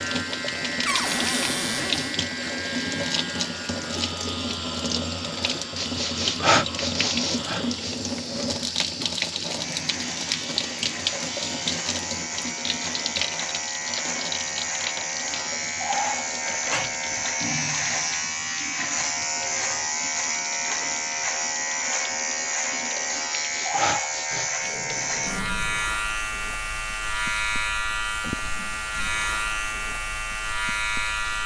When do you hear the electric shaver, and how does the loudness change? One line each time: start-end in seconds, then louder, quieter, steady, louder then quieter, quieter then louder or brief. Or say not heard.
0.0-31.4 louder.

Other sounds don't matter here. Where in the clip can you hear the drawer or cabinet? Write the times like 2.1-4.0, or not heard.
0.8-2.2, 16.6-17.3.